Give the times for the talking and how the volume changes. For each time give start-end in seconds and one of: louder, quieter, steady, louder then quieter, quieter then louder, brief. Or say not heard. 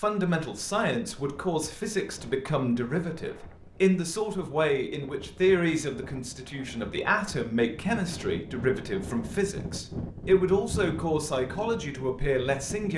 0.0-12.9 steady.